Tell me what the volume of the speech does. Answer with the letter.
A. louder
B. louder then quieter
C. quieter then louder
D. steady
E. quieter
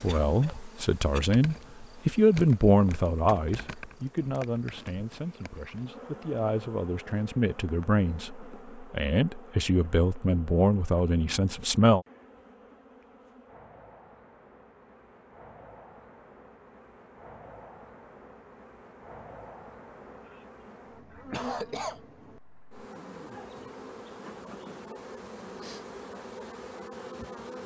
C.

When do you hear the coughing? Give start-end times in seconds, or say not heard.
0.1-1.2, 20.2-22.0.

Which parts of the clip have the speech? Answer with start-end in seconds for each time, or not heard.
0.0-12.1.